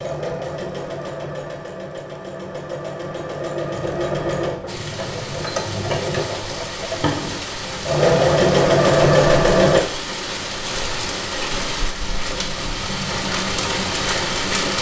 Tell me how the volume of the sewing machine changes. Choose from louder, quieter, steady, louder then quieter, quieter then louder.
louder.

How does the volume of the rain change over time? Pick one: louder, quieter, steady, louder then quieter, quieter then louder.
louder.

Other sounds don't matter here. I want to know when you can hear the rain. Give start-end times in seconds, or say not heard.
4.7-14.7.